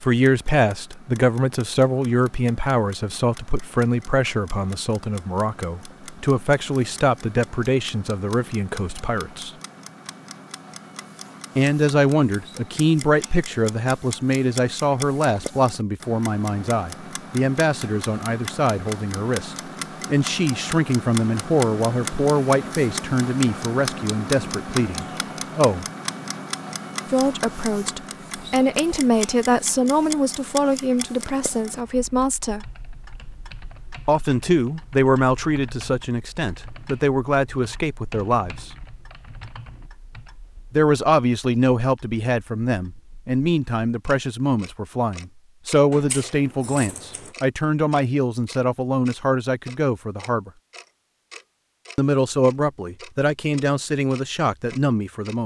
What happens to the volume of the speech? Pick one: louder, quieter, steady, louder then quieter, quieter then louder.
steady.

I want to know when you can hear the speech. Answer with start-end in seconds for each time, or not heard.
0.0-9.5, 11.6-25.9, 27.1-32.6, 34.0-38.7, 40.7-50.5, 52.0-55.4.